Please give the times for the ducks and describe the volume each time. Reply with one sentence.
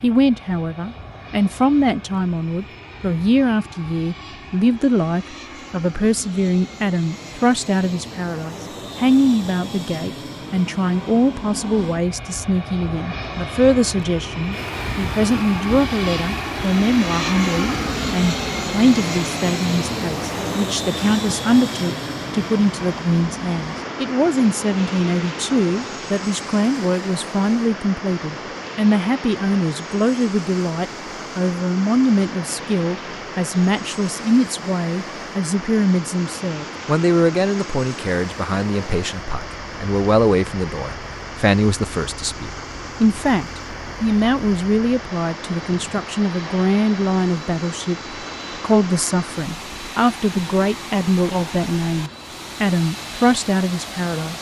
You can't hear the ducks here.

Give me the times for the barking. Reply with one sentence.
You can't hear the barking here.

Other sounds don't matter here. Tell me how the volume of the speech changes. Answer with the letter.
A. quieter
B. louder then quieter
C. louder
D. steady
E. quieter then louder
D.